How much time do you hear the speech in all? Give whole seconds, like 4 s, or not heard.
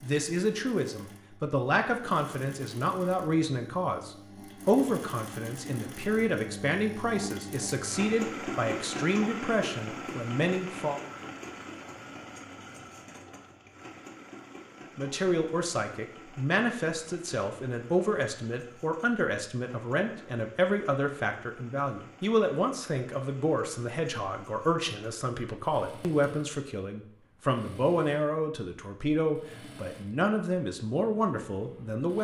28 s.